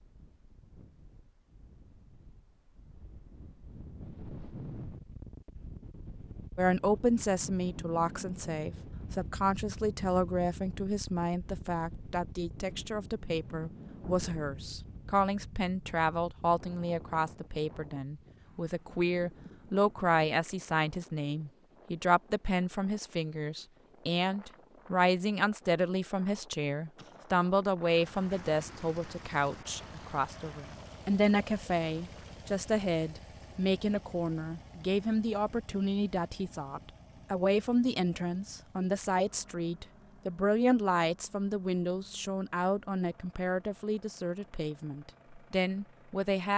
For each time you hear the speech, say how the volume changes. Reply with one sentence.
You can hear the speech from 6.5 to 46.5 s, at a steady volume.